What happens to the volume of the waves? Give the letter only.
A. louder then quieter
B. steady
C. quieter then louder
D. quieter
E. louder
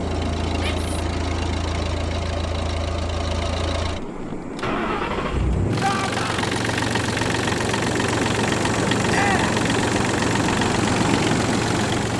E.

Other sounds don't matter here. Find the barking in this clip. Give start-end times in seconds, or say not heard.
not heard.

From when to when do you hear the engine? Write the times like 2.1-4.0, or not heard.
0.0-12.1.